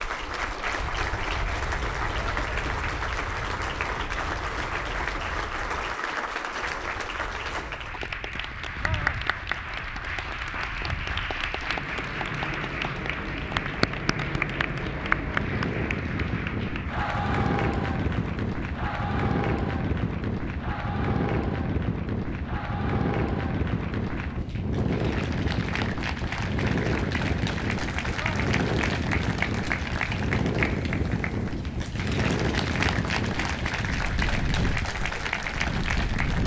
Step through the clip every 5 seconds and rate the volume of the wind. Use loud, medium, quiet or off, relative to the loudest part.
quiet, quiet, medium, loud, loud, loud, loud, loud.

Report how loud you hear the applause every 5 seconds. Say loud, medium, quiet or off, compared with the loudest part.
loud, loud, loud, loud, medium, loud, loud, loud.